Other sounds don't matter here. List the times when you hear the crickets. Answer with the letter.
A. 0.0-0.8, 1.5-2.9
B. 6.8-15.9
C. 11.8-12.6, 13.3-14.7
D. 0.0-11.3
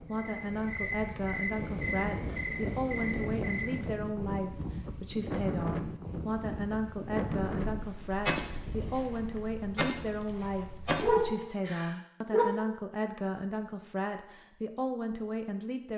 D.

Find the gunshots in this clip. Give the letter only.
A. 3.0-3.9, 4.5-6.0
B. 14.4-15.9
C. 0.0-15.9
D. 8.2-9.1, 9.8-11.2
D.